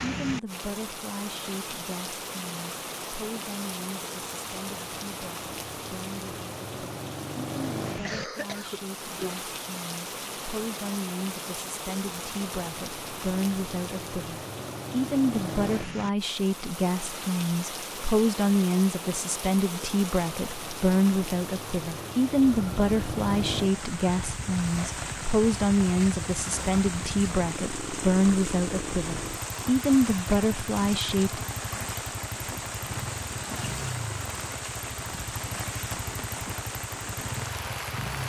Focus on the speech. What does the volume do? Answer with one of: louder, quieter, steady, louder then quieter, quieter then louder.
louder.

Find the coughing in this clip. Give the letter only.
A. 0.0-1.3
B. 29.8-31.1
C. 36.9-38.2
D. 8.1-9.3
D.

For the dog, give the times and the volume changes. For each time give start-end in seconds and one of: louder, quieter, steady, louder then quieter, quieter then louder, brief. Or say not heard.
not heard.